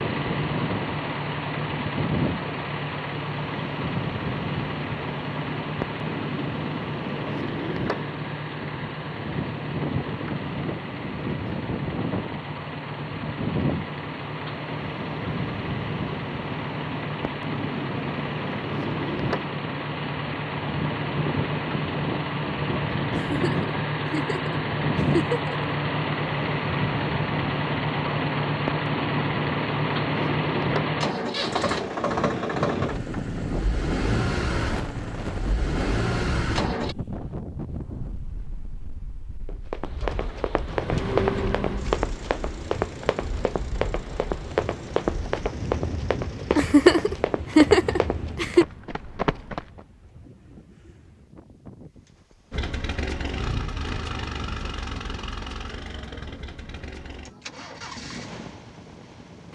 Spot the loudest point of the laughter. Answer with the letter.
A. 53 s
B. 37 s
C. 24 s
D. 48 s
D.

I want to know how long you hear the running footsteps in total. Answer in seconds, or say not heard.
10 s.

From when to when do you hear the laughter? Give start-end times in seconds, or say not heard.
23.1-25.8, 46.5-48.6.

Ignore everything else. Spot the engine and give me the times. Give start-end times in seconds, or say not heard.
0.0-37.0, 40.0-47.1, 52.5-59.5.